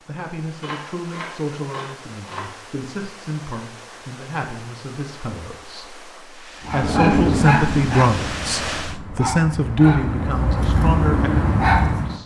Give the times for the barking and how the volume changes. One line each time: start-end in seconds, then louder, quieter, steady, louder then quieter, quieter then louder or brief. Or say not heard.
6.7-12.2 quieter then louder.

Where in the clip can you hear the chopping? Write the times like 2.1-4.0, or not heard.
0.6-2.5.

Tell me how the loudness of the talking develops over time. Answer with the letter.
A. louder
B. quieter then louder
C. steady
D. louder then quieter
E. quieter
A.